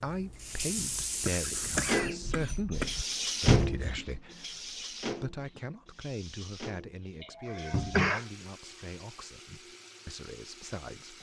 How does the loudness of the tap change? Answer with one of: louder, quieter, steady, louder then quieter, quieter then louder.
quieter.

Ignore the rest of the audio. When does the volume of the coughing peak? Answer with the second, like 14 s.
8 s.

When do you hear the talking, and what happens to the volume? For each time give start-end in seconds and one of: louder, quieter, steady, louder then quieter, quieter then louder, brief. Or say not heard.
0.0-11.1 quieter.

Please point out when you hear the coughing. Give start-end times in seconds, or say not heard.
1.2-3.0, 7.2-8.2.